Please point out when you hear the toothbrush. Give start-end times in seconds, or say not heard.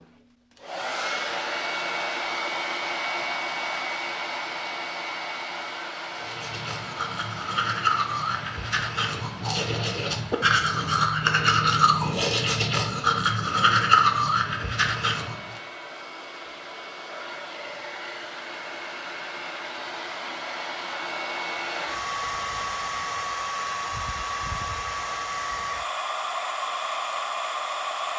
6.1-15.6.